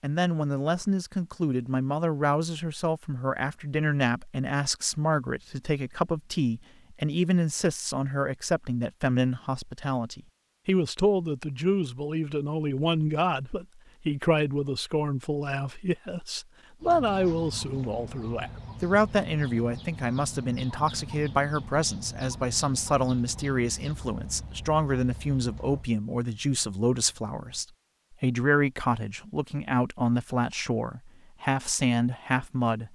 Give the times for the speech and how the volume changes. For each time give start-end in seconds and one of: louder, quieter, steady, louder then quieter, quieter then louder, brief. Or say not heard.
0.0-32.9 steady.